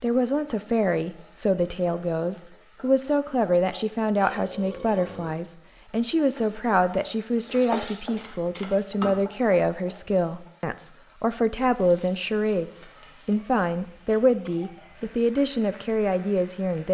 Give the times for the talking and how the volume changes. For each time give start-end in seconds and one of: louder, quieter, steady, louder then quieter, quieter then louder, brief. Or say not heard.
0.0-16.8 steady.